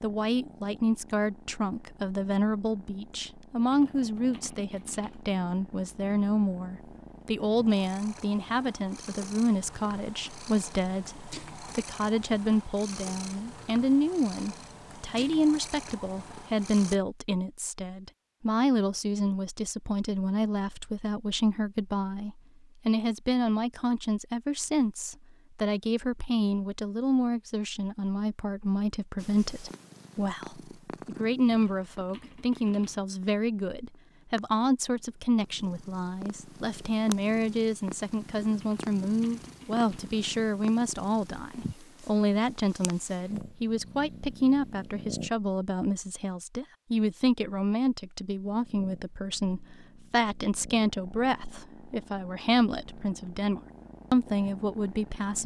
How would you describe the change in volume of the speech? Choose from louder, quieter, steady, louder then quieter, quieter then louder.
steady.